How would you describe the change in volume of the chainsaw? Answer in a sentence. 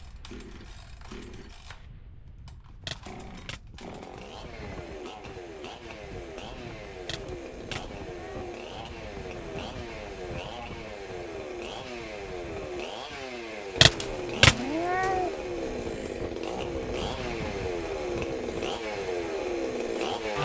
The loudness of the chainsaw goes up.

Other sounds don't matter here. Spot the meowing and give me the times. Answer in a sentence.
The meowing can be heard from 2.8 to 3.6 s, from 7.0 to 8.4 s and from 13.8 to 15.3 s.